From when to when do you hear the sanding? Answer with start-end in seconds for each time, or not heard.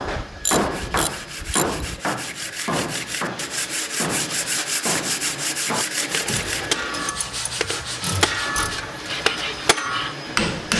0.5-10.2.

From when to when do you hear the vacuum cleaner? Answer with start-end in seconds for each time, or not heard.
0.0-10.7.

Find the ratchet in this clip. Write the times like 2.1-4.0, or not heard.
0.1-1.8, 6.2-8.9.